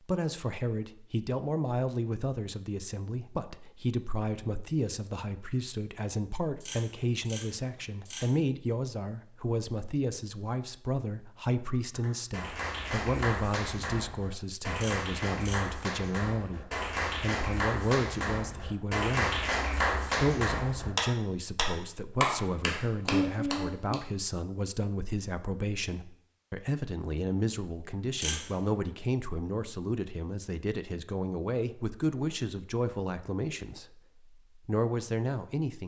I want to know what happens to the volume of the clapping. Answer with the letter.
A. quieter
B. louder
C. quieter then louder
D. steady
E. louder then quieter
B.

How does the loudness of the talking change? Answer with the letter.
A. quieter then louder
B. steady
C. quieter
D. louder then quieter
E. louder
B.